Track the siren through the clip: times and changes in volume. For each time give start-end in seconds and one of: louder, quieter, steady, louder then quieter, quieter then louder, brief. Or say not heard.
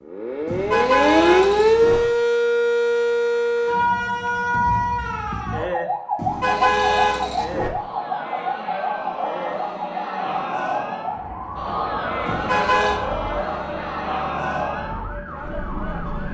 0.1-16.3 quieter.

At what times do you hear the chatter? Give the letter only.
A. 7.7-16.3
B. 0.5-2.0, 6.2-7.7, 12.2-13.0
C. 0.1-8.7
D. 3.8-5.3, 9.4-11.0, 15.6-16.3
A.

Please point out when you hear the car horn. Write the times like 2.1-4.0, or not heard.
0.5-2.0, 6.2-7.7, 12.2-13.0.